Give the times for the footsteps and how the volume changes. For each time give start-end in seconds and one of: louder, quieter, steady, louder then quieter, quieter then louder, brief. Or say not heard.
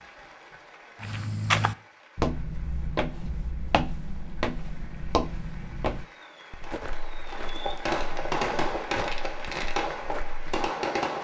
1.0-10.4 quieter.